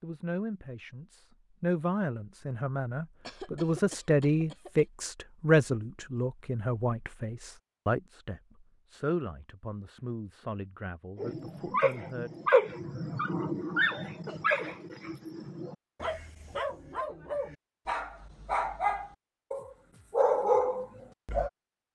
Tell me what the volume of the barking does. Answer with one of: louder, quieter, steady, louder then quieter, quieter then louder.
quieter then louder.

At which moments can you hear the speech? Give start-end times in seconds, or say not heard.
0.0-12.3.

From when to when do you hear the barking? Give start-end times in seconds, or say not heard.
11.2-21.5.